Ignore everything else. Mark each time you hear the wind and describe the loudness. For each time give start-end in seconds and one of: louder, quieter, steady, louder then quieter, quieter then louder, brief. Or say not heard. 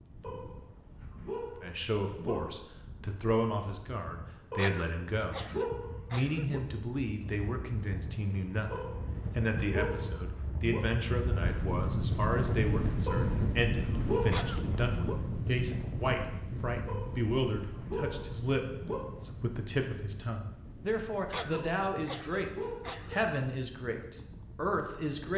0.0-25.3 louder then quieter.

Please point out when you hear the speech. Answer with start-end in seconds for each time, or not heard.
1.6-5.4, 6.1-25.3.